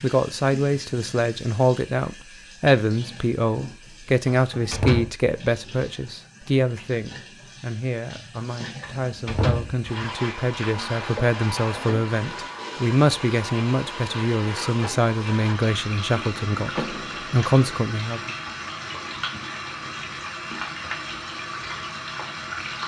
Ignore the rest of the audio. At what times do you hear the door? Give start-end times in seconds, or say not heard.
4.2-5.1, 8.8-9.9, 16.8-17.4.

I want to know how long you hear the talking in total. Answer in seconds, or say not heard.
18 s.